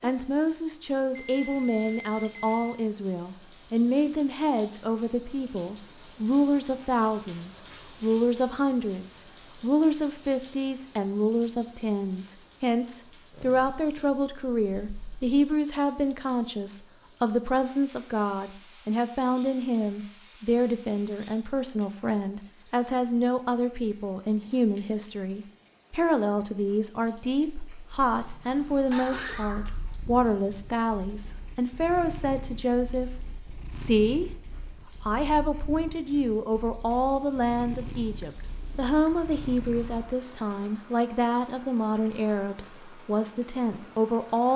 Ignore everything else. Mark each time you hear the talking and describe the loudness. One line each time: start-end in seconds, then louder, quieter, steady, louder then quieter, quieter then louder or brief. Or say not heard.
0.0-44.5 steady.